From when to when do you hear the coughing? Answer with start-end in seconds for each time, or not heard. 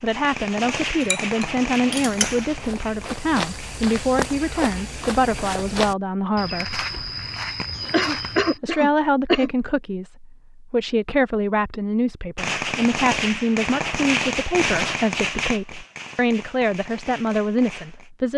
7.9-9.5.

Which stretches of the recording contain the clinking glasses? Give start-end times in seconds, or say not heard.
1.0-2.5.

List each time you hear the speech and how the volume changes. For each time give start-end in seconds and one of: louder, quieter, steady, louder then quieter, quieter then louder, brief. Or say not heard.
0.0-6.8 steady
8.6-18.3 steady.